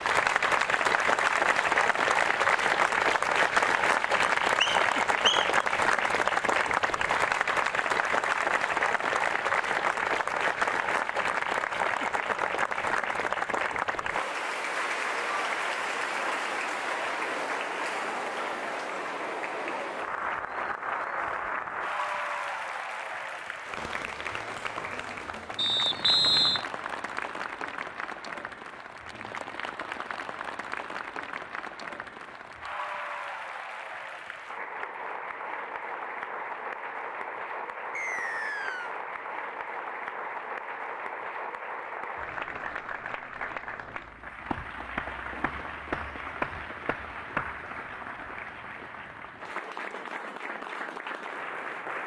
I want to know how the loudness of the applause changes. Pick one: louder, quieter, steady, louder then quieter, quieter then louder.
quieter.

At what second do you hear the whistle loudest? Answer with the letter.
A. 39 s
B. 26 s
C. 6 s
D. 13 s
B.